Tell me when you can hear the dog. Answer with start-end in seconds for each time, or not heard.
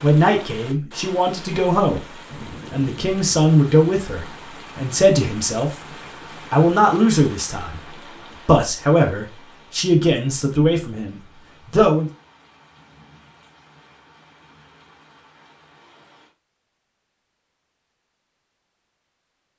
not heard.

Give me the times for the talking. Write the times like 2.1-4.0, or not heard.
0.0-5.7, 6.5-12.1.